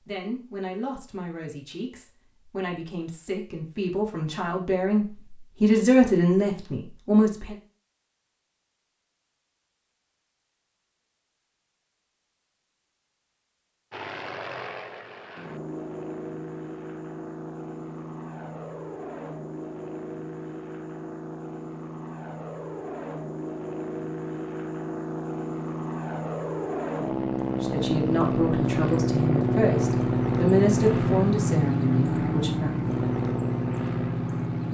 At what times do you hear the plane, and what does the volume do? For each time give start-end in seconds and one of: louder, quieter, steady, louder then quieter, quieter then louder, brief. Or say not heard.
13.9-34.6 louder.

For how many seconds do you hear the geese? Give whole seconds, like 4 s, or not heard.
not heard.